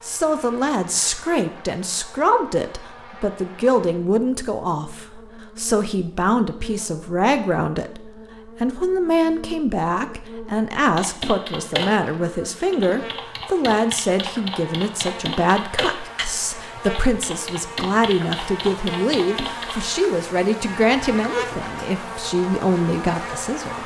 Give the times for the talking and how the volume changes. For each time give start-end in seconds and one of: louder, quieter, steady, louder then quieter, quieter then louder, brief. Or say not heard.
0.0-23.8 steady.